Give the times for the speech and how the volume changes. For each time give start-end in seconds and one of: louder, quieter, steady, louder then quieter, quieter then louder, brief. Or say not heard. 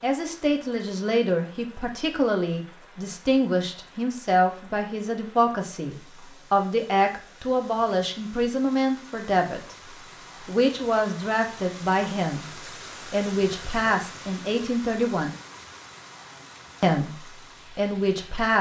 0.0-15.3 steady
16.8-18.5 brief.